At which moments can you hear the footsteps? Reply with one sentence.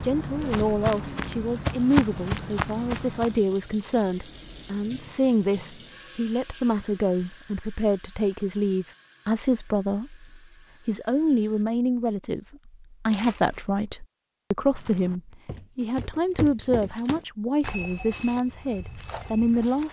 The footsteps can be heard from 0.0 to 3.5 s and from 14.7 to 19.8 s.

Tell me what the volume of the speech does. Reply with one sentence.
The loudness of the speech stays about the same.